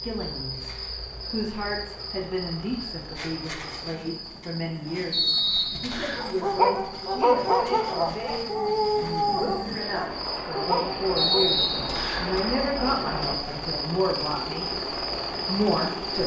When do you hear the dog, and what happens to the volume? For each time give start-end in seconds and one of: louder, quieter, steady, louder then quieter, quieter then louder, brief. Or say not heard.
6.2-11.4 quieter.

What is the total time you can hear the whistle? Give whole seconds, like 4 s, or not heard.
2 s.